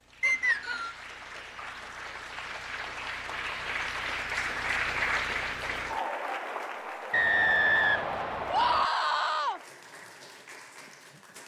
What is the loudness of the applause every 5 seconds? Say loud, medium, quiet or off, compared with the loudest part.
loud, loud, quiet.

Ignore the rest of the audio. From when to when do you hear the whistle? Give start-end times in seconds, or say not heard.
0.2-0.9, 7.1-8.8.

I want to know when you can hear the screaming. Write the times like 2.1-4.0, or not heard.
8.5-9.6.